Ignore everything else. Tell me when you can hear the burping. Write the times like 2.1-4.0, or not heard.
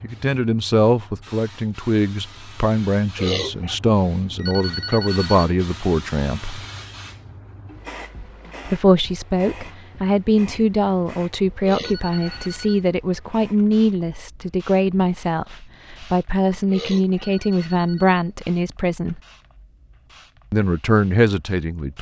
3.1-3.8, 11.6-12.6, 16.7-17.4.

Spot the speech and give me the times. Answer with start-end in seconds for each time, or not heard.
0.0-6.7, 8.7-19.2, 20.5-21.9.